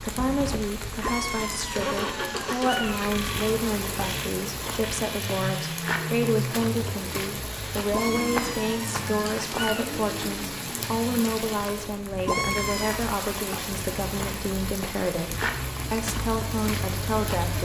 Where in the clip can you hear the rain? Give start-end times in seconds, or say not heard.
0.0-17.6.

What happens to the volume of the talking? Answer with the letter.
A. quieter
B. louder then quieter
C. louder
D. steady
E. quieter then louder
D.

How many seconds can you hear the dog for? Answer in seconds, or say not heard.
not heard.